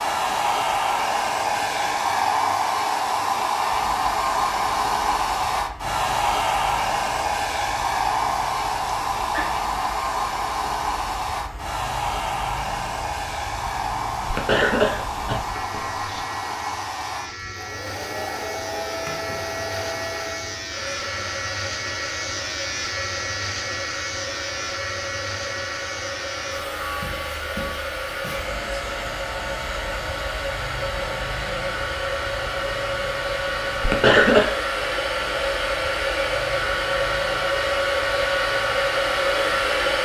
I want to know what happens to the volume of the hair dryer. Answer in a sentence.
The loudness of the hair dryer goes down, then up.